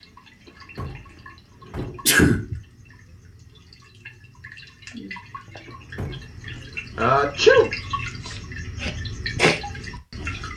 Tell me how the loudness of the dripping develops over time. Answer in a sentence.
The volume of the dripping goes up.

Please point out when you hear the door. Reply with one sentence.
The door can be heard from 0.5 to 2.1 s and from 5.7 to 6.5 s.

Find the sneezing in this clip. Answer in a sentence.
The sneezing can be heard from 2.0 to 2.5 s and from 7.0 to 7.7 s.